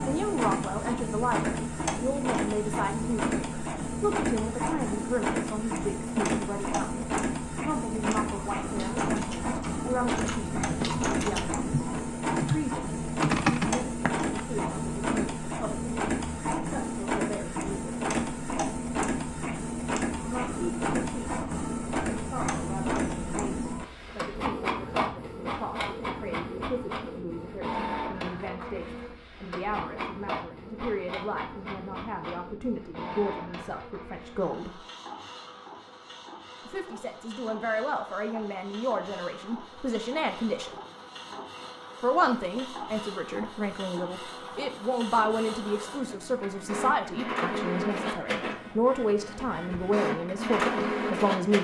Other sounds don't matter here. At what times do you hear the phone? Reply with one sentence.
The phone can't be heard in this clip.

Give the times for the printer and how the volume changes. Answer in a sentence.
The printer can be heard from 0.0 to 51.5 s, getting quieter then louder.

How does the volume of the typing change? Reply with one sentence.
The loudness of the typing goes up.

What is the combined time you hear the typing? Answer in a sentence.
You can hear the typing for 6 seconds altogether.